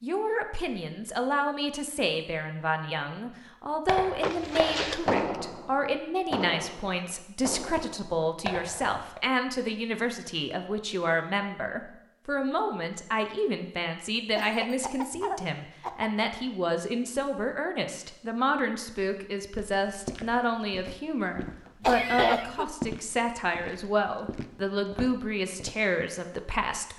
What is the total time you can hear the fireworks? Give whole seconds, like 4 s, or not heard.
5 s.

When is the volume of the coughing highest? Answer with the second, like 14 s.
22 s.